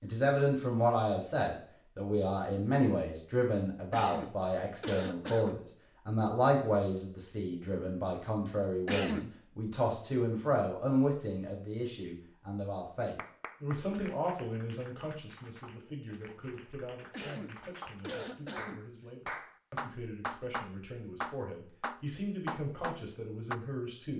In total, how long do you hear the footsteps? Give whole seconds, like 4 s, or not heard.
not heard.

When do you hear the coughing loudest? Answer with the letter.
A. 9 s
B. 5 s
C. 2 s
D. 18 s
A.